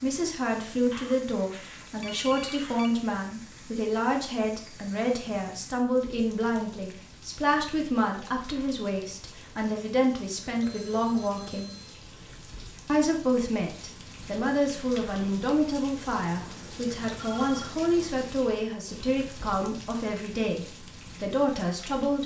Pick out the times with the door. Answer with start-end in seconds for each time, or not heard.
not heard.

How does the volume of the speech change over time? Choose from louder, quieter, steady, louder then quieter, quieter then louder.
steady.